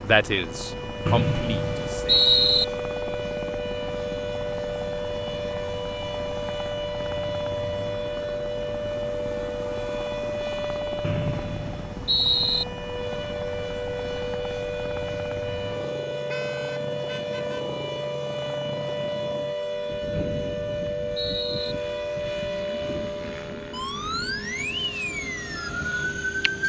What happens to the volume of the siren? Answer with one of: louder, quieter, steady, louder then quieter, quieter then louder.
steady.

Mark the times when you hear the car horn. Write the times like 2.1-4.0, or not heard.
16.2-17.8.